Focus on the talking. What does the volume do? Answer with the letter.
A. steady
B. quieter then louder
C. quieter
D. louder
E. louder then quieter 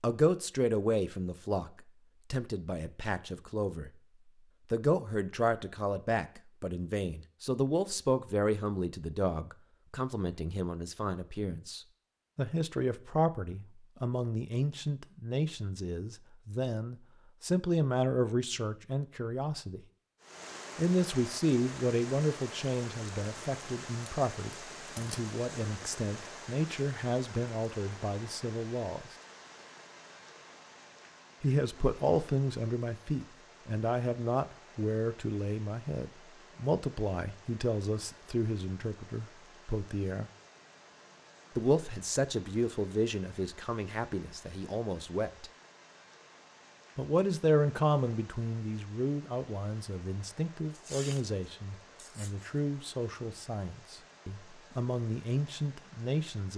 A.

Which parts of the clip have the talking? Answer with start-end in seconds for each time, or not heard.
0.0-3.9, 4.7-19.8, 20.8-29.1, 31.4-40.3, 41.5-45.5, 47.0-56.5.